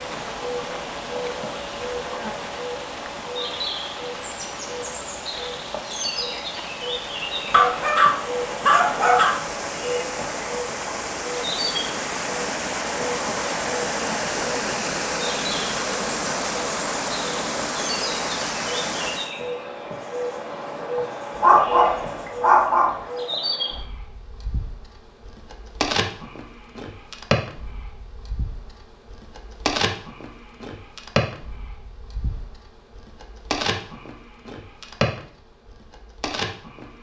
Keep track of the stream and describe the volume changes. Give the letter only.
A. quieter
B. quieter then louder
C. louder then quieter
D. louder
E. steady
D.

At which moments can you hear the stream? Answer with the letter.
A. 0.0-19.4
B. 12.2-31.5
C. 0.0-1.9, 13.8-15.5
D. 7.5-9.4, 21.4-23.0
A.